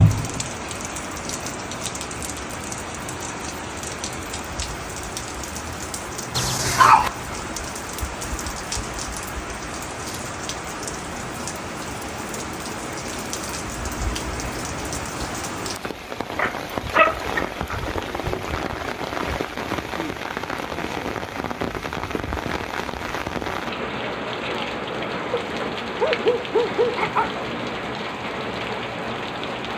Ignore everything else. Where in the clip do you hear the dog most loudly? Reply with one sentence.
The volume of the dog peaks at 7 seconds.